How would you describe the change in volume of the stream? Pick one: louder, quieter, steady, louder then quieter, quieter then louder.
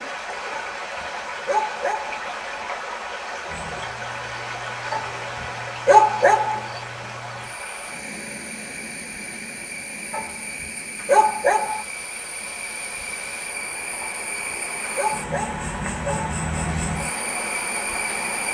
quieter then louder.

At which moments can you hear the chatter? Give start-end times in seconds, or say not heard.
not heard.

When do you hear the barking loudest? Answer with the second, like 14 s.
6 s.